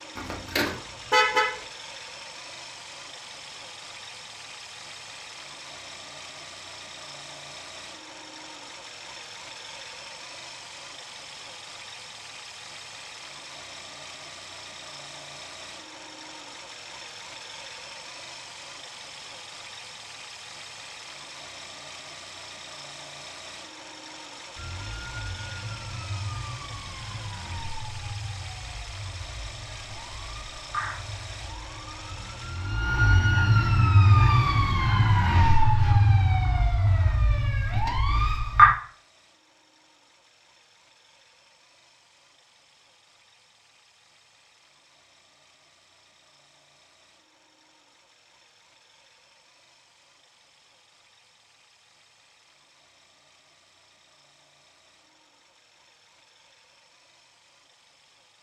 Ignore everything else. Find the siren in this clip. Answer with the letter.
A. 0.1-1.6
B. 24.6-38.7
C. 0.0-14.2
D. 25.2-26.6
B.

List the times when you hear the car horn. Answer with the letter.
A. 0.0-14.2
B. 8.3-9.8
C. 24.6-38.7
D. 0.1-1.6
D.